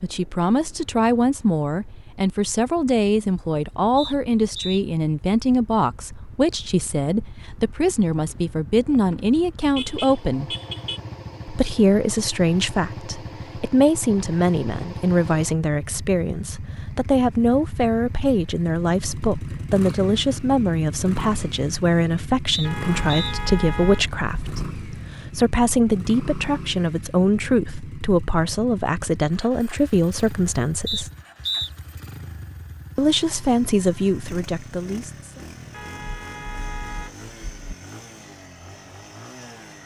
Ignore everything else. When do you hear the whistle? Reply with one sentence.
You can hear the whistle from 4.0 to 4.8 s, from 22.5 to 23.4 s and from 30.9 to 31.7 s.